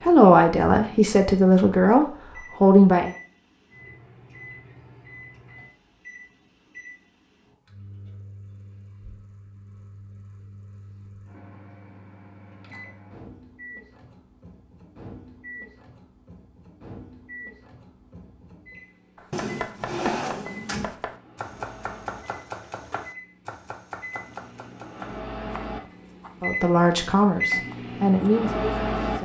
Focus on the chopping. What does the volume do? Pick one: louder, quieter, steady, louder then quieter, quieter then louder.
quieter.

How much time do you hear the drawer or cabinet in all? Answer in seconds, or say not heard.
2 s.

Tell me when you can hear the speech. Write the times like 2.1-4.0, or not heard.
0.1-3.1, 26.4-29.1.